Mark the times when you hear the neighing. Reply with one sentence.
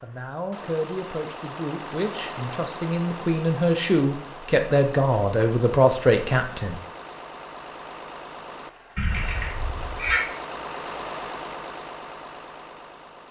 The neighing can be heard from 8.9 to 10.2 s.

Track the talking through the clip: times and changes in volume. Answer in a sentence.
The talking can be heard from 0.0 to 6.8 s, getting louder.